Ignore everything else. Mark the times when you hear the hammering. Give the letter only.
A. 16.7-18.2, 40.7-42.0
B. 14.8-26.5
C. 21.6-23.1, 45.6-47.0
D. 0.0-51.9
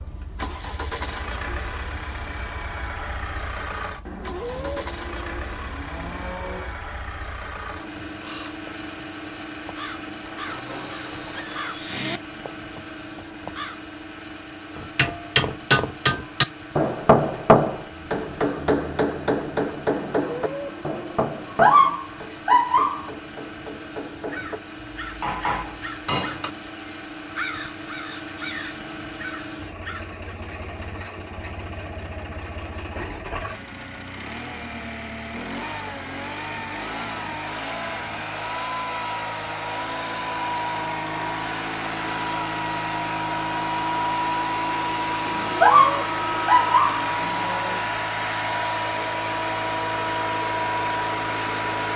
B.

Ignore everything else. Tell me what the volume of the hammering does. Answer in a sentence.
The loudness of the hammering goes down, then up.